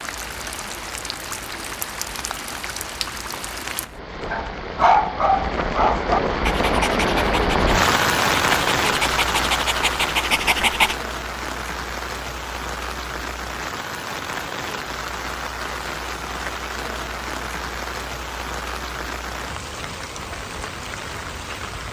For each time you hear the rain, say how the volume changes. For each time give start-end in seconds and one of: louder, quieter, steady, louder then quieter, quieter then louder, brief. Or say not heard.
0.0-21.8 louder then quieter.